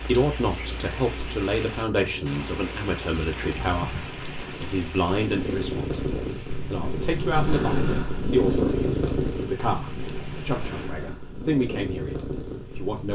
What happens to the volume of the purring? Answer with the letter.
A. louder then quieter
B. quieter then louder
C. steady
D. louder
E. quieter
A.